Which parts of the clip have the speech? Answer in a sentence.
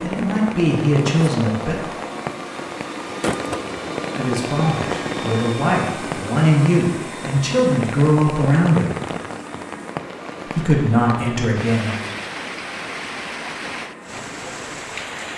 The speech can be heard from 0.0 to 1.8 s, from 4.2 to 9.0 s and from 10.4 to 11.9 s.